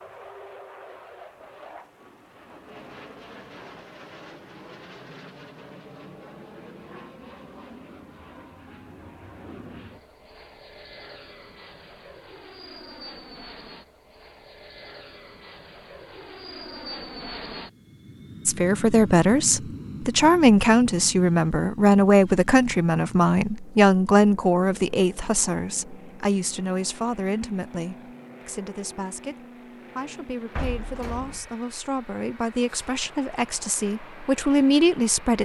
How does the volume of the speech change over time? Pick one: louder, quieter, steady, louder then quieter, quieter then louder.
quieter then louder.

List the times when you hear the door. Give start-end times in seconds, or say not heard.
30.6-31.6.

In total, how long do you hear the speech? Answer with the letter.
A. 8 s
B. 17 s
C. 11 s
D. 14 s
B.